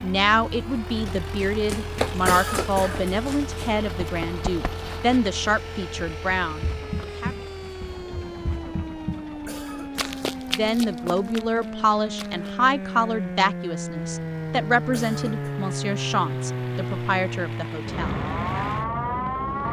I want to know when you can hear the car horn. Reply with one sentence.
The car horn can't be heard in this clip.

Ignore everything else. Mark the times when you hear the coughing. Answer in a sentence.
The coughing can be heard from 2.2 to 3.1 s, from 9.4 to 10.1 s and from 14.9 to 15.5 s.